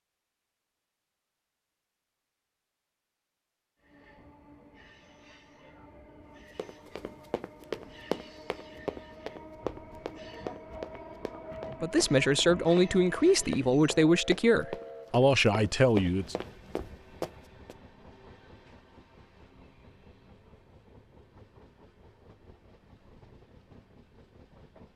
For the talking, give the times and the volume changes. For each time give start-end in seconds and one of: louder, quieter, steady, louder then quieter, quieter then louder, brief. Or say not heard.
11.8-16.4 steady.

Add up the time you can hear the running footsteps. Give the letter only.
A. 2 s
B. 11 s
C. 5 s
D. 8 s
B.